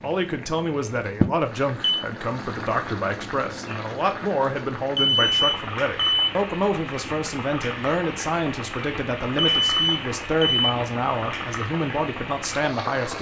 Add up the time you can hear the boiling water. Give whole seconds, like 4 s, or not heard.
13 s.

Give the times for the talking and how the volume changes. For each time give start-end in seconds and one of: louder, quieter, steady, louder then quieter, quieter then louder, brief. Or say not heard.
0.0-13.1 steady.